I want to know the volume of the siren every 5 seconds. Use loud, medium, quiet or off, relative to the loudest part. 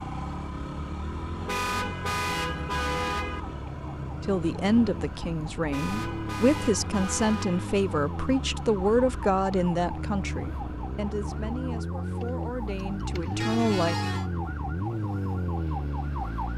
medium, medium, loud, loud.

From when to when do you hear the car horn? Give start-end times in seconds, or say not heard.
1.4-3.4, 5.7-7.7, 13.4-14.2.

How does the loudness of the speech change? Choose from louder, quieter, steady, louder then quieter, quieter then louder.
quieter.